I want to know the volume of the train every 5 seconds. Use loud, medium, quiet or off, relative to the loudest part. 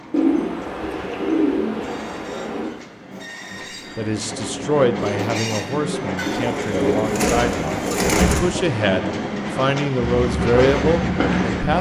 medium, loud, loud.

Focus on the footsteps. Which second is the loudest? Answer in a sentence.
The loudest moment of the footsteps is at 11 seconds.